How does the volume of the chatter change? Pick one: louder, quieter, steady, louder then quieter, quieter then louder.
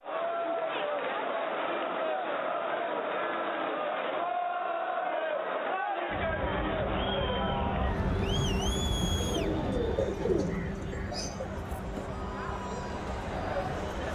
quieter.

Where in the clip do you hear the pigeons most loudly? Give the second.
10 s.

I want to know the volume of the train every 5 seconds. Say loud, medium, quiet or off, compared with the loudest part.
off, loud, medium.